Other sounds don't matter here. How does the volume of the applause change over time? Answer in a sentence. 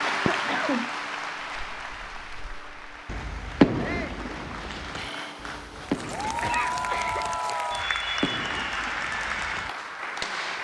The volume of the applause goes down, then up.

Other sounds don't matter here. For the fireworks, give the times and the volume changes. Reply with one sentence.
The fireworks can be heard briefly from 0.2 to 0.8 s; and from 1.6 to 10.5 s, getting louder then quieter.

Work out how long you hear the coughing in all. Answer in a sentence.
You can hear the coughing for 2 seconds altogether.